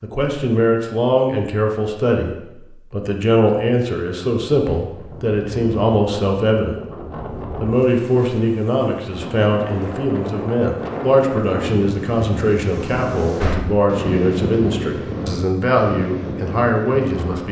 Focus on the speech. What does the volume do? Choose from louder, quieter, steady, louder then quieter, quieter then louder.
steady.